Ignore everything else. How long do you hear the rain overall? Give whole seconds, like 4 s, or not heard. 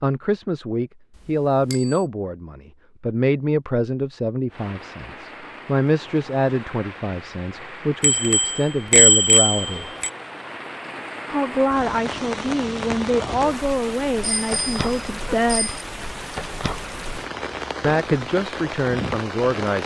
15 s.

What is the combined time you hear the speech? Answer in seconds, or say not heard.
16 s.